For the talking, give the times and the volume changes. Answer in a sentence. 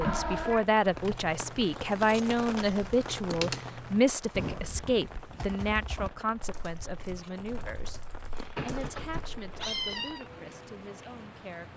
You can hear the talking from 0.0 to 11.7 s, getting quieter.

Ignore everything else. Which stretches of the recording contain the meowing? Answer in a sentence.
The meowing can be heard from 0.0 to 0.7 s and from 8.6 to 10.2 s.